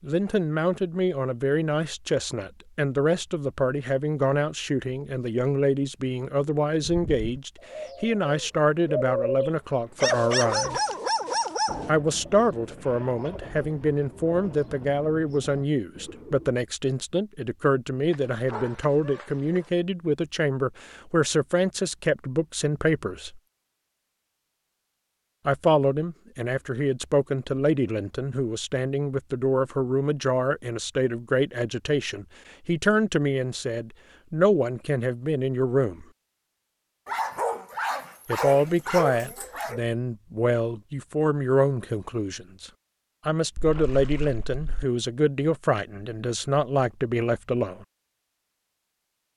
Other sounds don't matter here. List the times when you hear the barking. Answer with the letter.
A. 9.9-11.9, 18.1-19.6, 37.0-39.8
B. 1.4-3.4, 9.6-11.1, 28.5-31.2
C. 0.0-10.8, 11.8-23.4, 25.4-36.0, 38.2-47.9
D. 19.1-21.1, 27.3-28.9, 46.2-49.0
A.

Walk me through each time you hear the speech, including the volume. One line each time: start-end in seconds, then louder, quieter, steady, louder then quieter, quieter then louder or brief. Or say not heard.
0.0-10.8 steady
11.8-23.4 steady
25.4-36.0 steady
38.2-47.9 steady.